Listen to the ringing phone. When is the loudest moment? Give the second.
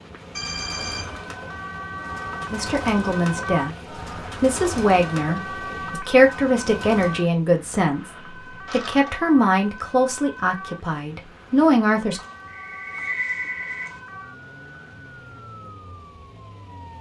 13 s.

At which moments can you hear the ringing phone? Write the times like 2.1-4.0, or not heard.
0.3-1.2, 8.7-9.2, 12.2-14.0.